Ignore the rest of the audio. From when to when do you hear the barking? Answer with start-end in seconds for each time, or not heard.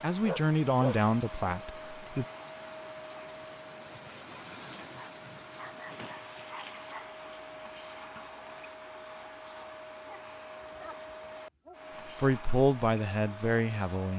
0.2-0.9, 4.8-7.1, 9.5-11.8.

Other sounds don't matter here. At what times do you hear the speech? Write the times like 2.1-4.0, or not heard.
0.0-2.2, 12.2-14.1.